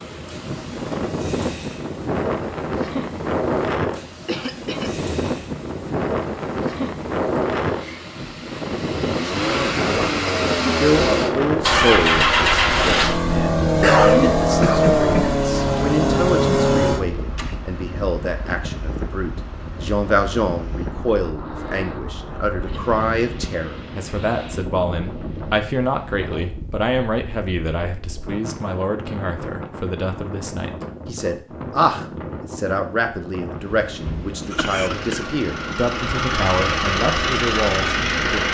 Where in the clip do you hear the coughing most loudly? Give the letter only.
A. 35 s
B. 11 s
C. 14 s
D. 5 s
C.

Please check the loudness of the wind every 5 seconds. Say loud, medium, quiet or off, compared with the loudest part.
loud, loud, loud, medium, medium, medium, medium, medium.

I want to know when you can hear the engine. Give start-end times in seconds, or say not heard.
0.1-17.6, 34.6-38.4.